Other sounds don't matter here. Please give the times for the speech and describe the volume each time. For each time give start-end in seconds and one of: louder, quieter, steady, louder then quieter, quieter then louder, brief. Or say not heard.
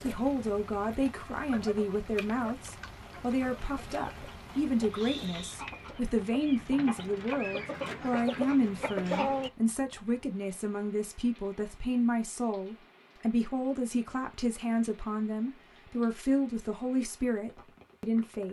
0.0-18.4 steady.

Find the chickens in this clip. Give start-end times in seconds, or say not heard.
1.4-9.5.